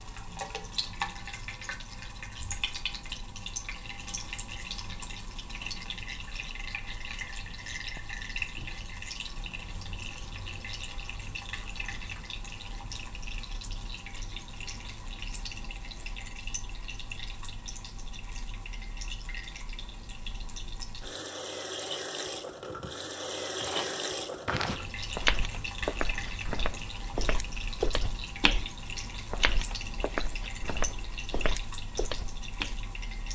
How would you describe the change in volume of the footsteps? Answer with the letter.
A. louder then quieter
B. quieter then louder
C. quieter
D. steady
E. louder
C.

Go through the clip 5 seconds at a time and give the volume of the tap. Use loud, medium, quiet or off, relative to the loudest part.
loud, loud, medium, medium, loud, loud, medium.